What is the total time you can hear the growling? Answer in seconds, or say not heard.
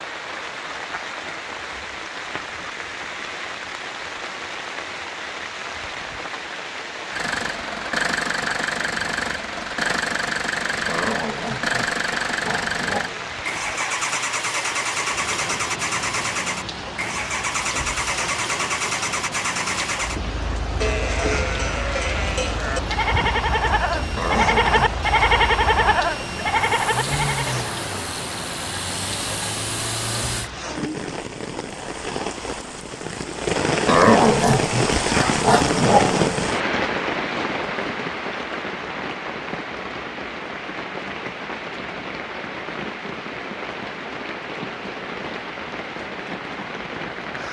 6 s.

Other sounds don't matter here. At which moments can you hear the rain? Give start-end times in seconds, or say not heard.
0.0-47.4.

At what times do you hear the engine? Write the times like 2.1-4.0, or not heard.
7.1-30.5.